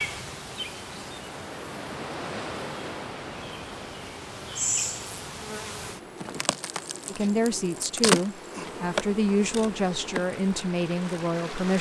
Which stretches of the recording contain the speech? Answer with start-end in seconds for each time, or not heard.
7.0-11.7.